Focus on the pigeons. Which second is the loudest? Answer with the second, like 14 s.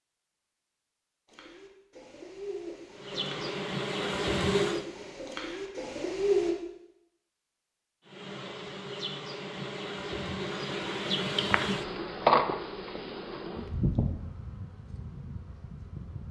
6 s.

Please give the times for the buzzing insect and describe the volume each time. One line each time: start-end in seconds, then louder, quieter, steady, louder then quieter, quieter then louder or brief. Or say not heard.
3.0-4.8 brief
8.1-16.2 louder then quieter.